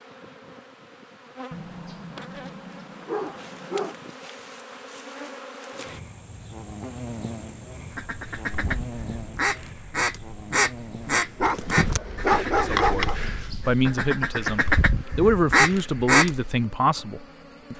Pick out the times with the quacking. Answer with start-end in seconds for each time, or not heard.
7.9-16.5.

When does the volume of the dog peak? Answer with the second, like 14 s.
12 s.